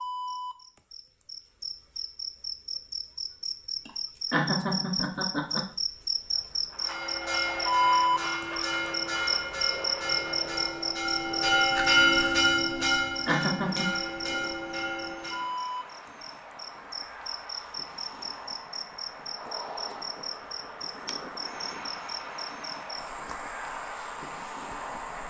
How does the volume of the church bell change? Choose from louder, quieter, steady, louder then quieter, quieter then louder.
louder then quieter.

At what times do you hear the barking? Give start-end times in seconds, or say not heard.
not heard.